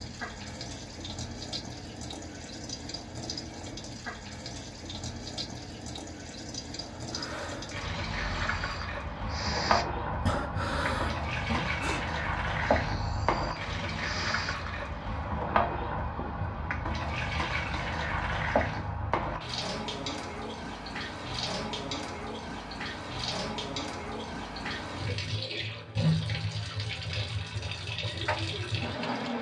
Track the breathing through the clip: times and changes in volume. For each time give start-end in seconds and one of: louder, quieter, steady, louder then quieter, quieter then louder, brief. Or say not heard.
7.0-14.6 louder then quieter.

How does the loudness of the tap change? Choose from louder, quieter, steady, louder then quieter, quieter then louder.
louder.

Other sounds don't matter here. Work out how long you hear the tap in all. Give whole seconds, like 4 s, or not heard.
29 s.